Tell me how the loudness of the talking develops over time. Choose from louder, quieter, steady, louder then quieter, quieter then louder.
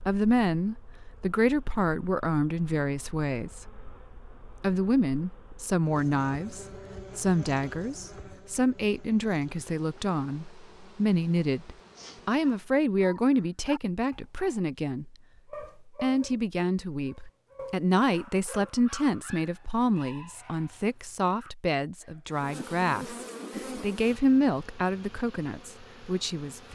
steady.